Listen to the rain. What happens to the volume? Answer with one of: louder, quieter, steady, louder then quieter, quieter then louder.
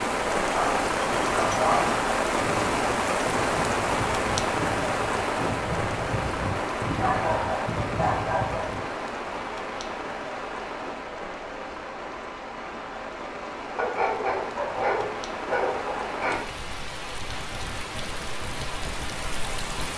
quieter.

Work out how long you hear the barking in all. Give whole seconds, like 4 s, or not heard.
6 s.